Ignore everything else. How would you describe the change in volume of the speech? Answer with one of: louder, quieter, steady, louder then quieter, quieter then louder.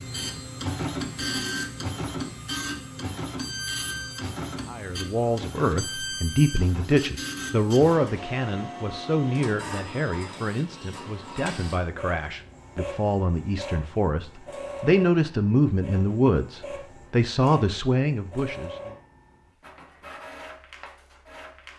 quieter then louder.